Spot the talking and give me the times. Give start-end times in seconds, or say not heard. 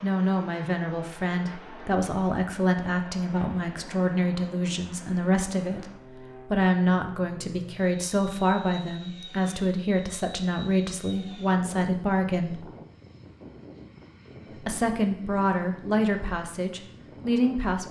0.0-5.9, 6.5-12.7, 14.7-17.8.